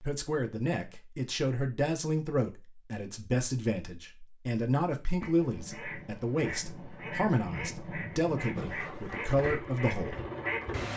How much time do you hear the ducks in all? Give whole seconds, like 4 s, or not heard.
6 s.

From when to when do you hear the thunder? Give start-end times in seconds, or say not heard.
5.5-9.0.